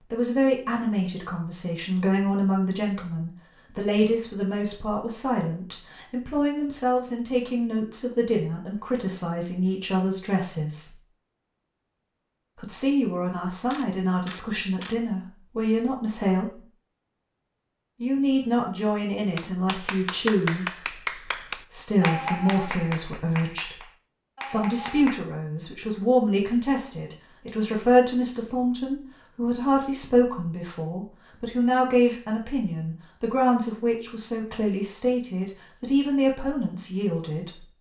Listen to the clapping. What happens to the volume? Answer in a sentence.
The volume of the clapping goes down.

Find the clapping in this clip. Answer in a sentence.
You can hear the clapping from 19.4 to 25.2 s.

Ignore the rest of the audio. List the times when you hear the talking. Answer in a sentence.
You can hear the talking from 0.1 to 10.9 s, from 12.6 to 16.6 s, from 18.0 to 23.8 s and from 24.4 to 37.6 s.